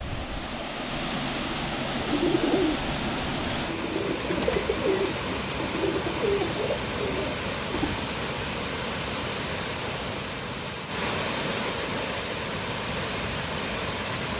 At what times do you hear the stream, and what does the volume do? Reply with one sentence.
The stream can be heard from 0.0 to 14.3 s, at a steady volume.